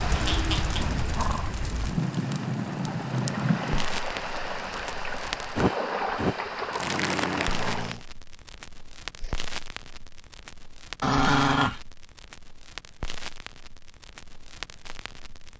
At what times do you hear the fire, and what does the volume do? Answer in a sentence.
The fire can be heard from 0.0 to 15.5 s, getting quieter.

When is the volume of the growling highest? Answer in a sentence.
The volume of the growling peaks at 11 seconds.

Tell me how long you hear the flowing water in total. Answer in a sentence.
The flowing water can be heard for 8 seconds in total.